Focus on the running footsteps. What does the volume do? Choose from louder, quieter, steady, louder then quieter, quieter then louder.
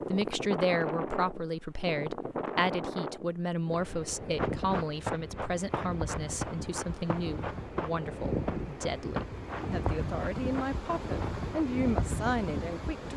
quieter.